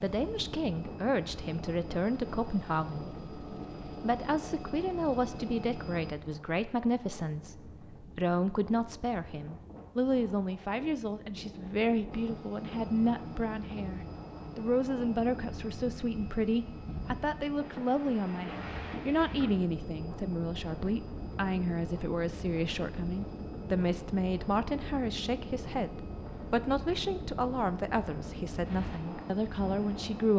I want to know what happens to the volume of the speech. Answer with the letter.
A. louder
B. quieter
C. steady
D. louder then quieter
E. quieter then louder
C.